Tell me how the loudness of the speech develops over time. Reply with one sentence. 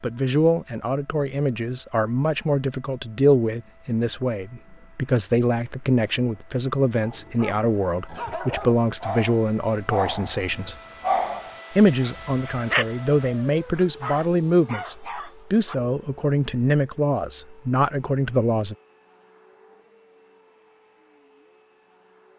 The volume of the speech stays about the same.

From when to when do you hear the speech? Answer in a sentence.
You can hear the speech from 0.0 to 10.8 s and from 11.7 to 18.8 s.